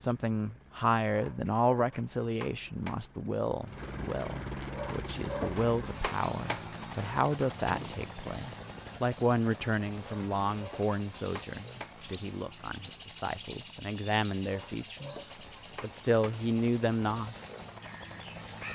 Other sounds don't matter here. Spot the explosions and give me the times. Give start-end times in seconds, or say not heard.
7.7-8.1.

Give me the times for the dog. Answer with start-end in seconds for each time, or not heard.
1.1-3.0, 4.7-6.7, 10.0-11.9, 14.4-16.4.